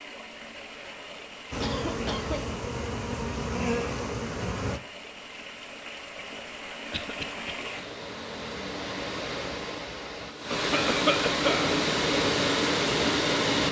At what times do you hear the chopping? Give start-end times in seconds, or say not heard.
not heard.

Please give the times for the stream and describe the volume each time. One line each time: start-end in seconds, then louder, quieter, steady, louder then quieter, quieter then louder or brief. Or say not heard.
0.0-13.6 louder.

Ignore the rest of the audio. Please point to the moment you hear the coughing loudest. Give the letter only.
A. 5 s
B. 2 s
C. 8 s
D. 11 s
D.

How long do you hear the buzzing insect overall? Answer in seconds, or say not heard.
3 s.